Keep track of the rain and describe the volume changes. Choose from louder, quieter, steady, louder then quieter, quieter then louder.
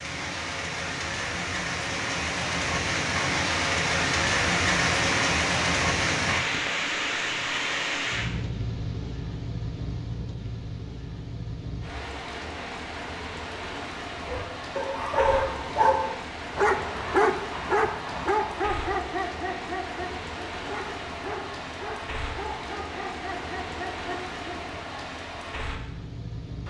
quieter.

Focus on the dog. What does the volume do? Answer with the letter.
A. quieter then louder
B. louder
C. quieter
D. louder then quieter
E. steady
C.